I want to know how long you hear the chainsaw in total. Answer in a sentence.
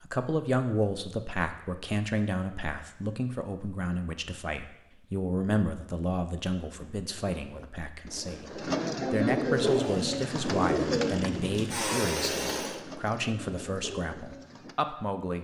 You can hear the chainsaw for 3 seconds altogether.